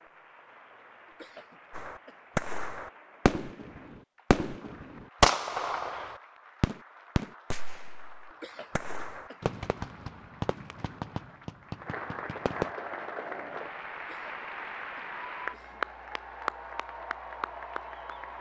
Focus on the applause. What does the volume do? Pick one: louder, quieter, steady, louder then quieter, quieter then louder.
louder.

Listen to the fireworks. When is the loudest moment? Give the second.
5 s.